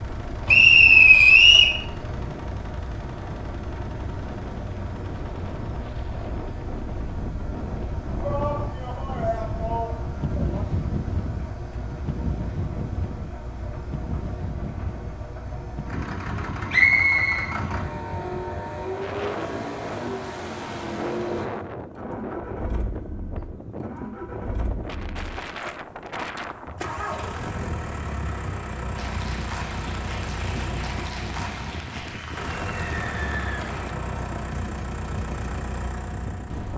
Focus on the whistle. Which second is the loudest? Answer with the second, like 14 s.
1 s.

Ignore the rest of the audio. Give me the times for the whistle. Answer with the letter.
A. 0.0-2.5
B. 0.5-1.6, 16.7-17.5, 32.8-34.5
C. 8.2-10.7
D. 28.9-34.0
B.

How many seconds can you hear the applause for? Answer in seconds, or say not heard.
5 s.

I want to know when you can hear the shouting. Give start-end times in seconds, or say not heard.
8.2-10.7.